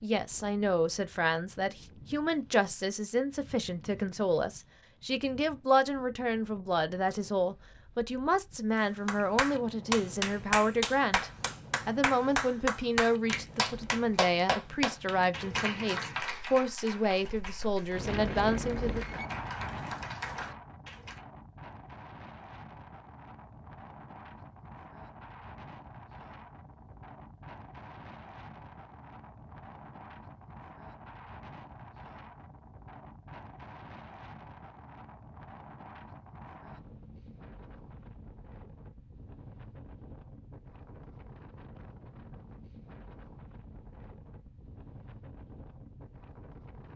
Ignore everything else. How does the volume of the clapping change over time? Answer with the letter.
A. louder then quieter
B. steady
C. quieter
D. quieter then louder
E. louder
C.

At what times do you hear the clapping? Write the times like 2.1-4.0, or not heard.
8.8-21.2.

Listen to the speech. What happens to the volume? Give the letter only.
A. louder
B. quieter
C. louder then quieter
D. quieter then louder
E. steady
E.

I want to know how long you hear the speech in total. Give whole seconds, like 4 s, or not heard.
19 s.